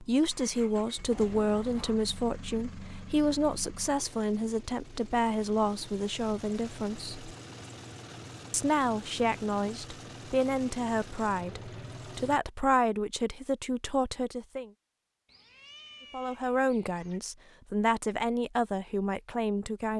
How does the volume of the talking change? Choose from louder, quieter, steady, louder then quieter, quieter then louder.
steady.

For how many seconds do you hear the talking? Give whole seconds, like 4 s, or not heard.
17 s.